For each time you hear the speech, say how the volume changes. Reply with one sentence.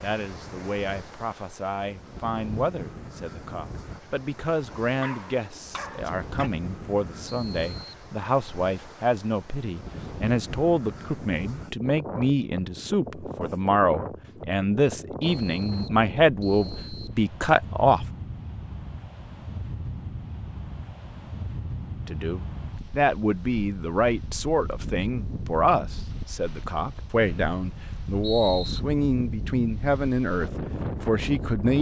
The speech can be heard from 0.0 to 18.1 s, getting louder; and from 22.1 to 31.7 s, at a steady volume.